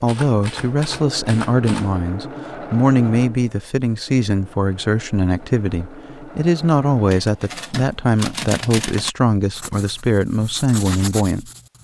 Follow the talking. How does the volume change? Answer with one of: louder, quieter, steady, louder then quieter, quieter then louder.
steady.